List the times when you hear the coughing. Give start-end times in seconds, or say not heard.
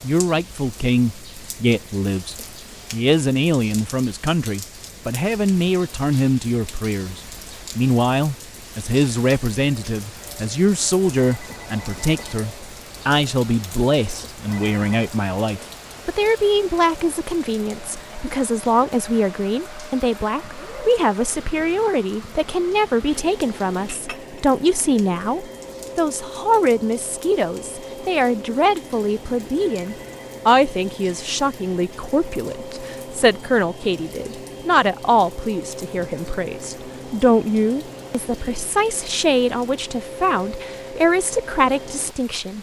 not heard.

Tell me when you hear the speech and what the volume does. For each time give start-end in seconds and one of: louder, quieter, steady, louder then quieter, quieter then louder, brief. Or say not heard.
0.0-42.5 steady.